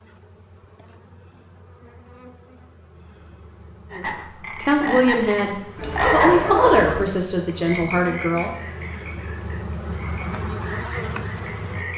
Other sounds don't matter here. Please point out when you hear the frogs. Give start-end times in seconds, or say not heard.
3.9-6.5, 7.0-11.9.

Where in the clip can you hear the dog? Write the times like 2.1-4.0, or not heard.
5.8-7.0.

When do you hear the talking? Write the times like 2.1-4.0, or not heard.
3.9-8.5.